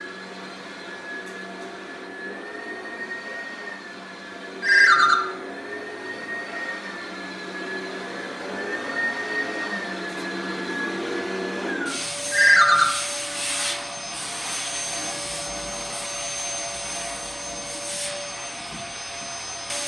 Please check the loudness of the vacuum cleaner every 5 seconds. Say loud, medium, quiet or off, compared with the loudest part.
medium, loud, loud, loud.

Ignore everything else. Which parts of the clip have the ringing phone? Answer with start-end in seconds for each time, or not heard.
4.6-5.2, 12.3-12.8.